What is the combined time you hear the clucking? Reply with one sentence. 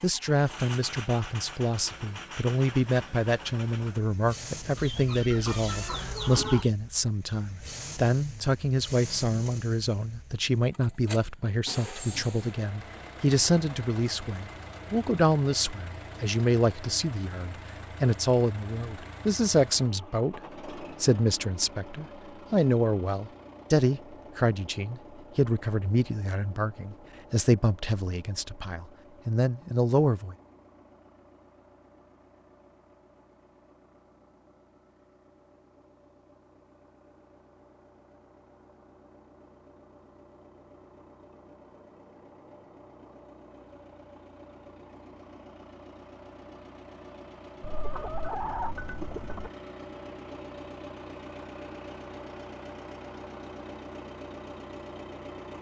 The clucking can be heard for 4 seconds in total.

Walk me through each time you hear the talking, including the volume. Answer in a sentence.
You can hear the talking from 0.0 to 30.4 s, at a steady volume.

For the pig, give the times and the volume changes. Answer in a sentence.
You can't hear the pig here.